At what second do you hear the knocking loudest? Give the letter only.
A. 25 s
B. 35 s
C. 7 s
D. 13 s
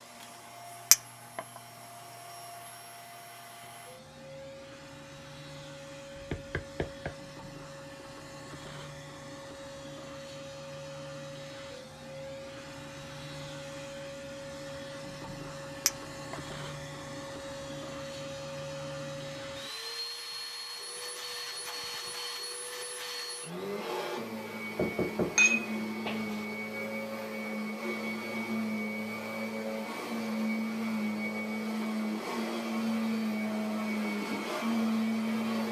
A.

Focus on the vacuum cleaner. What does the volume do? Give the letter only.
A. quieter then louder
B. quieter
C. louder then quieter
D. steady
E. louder
E.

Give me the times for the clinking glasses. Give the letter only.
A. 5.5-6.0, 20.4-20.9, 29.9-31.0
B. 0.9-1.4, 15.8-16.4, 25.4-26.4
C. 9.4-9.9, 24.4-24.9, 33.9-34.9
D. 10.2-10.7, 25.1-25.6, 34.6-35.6
B.